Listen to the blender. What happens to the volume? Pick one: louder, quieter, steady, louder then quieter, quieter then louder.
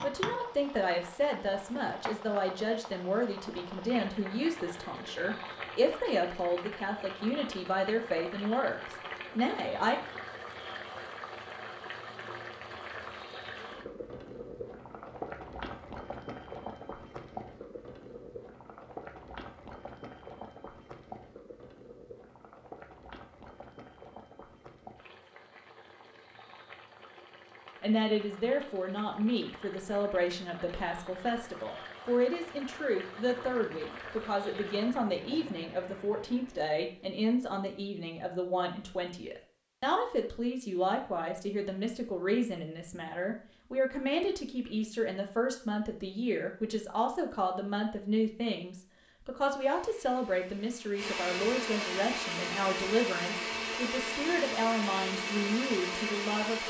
louder.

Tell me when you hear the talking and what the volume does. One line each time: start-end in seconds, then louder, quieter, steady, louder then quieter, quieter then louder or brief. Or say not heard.
0.0-10.0 steady
27.8-56.6 steady.